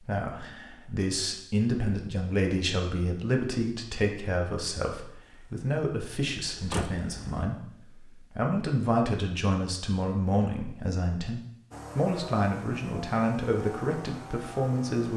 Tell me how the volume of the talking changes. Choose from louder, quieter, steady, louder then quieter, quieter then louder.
steady.